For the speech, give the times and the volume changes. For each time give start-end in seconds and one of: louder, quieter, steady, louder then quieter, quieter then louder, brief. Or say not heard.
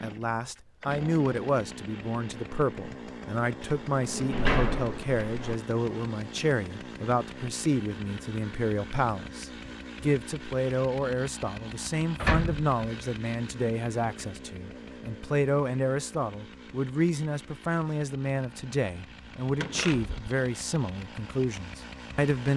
0.0-22.5 steady.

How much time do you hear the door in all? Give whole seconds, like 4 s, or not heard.
3 s.